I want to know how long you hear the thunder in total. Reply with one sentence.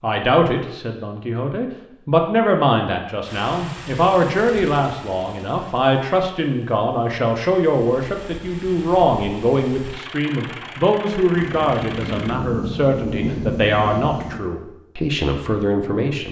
You can hear the thunder for 3 seconds altogether.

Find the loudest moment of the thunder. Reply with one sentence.
The loudest moment of the thunder is at 13 seconds.